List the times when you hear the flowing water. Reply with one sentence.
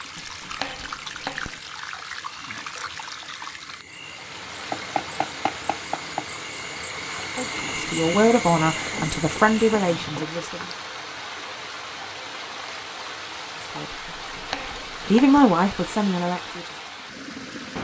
You can hear the flowing water from 0.0 to 17.7 s.